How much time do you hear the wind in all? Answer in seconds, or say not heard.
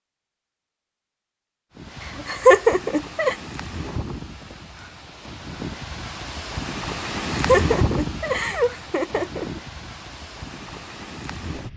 10 s.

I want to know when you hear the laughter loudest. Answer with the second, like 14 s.
3 s.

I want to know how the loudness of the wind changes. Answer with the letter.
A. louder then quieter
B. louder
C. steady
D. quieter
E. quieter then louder
A.